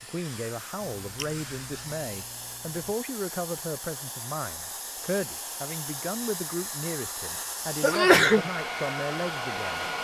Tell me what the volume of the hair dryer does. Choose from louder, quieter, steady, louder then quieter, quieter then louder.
louder.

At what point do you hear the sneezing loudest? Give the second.
8 s.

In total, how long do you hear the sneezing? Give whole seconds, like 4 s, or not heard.
3 s.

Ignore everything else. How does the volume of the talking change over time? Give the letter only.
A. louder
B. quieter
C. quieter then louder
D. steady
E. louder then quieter
D.